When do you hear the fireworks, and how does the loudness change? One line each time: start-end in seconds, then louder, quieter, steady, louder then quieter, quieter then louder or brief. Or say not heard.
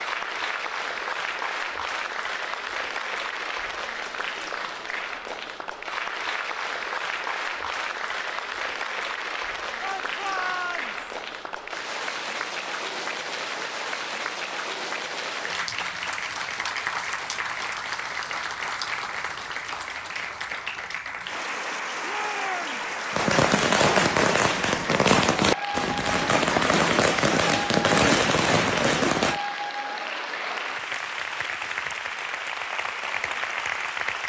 23.1-29.4 steady.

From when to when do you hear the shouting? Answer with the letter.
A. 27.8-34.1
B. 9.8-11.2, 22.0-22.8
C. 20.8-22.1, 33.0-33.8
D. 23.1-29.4
B.